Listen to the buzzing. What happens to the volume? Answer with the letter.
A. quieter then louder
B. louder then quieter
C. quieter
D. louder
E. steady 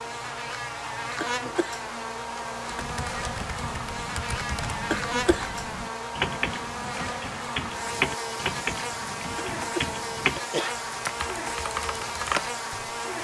E.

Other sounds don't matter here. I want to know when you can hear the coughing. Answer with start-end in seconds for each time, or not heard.
1.2-1.8, 4.9-5.5, 9.6-10.8.